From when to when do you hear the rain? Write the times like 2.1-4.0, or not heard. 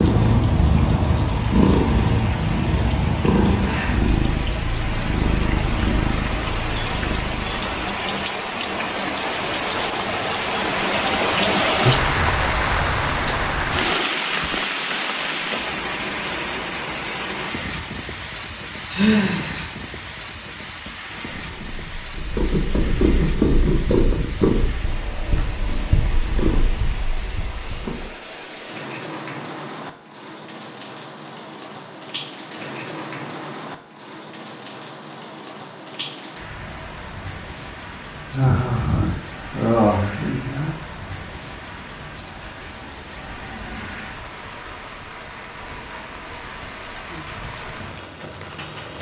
0.0-48.9.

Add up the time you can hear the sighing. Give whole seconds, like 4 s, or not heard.
3 s.